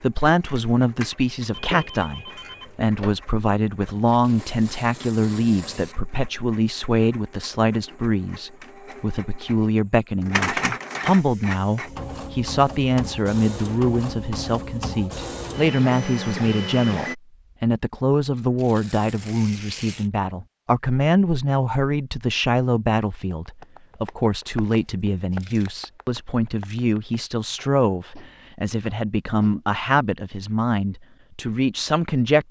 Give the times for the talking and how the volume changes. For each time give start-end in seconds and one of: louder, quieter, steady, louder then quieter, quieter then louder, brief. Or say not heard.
0.0-32.4 steady.